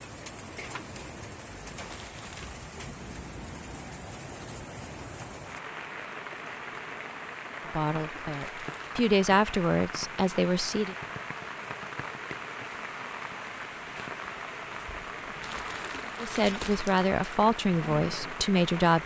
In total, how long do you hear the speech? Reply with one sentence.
You can hear the speech for 6 seconds altogether.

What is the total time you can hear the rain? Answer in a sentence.
The rain can be heard for 19 seconds in total.